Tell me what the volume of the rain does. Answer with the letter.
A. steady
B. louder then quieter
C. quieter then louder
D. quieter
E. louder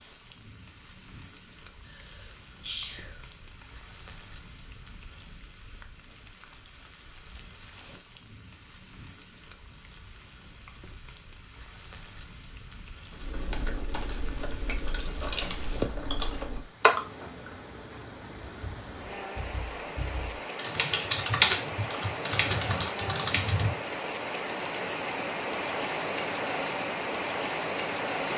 E.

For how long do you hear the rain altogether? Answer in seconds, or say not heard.
28 s.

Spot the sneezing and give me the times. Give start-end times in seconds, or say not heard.
1.9-3.6.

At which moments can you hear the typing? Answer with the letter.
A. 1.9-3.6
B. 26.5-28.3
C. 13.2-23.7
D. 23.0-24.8
C.